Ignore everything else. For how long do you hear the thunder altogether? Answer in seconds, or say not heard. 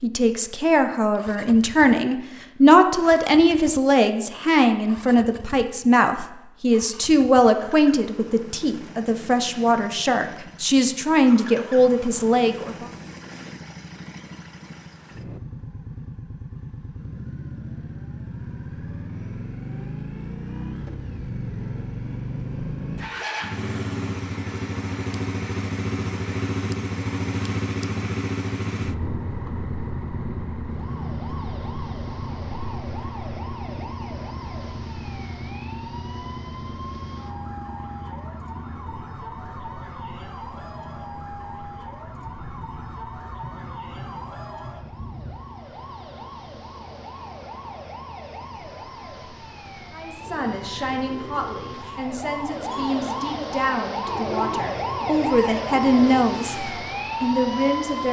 3 s.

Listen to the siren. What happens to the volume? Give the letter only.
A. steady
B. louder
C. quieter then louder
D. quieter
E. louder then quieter
B.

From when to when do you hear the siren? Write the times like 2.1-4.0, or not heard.
30.6-58.0.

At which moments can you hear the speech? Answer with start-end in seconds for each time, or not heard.
0.0-12.8, 49.9-58.0.